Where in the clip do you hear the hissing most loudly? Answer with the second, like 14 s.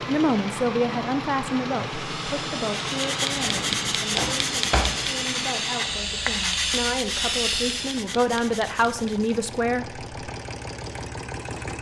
7 s.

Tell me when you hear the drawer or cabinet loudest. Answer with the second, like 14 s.
5 s.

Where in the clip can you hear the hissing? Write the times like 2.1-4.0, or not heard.
1.9-8.1.